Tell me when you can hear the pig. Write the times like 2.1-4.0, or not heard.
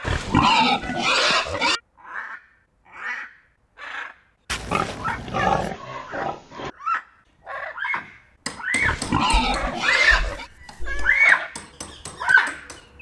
0.1-1.8, 4.7-6.7, 8.8-10.4.